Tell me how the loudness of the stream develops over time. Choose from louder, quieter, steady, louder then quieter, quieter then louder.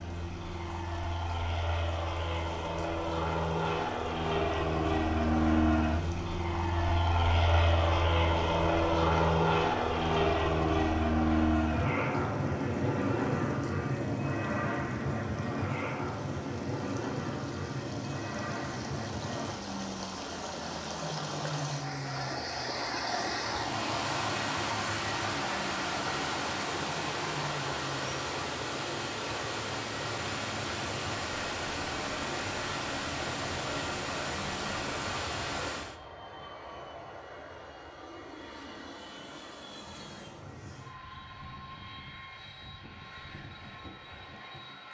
louder.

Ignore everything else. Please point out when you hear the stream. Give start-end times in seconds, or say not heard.
0.0-36.0.